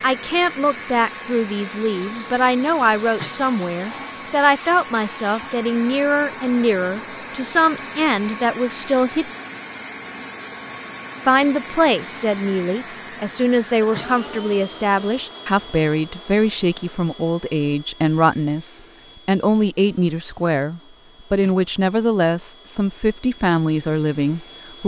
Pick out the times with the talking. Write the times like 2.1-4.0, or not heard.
0.0-9.3, 11.2-24.8.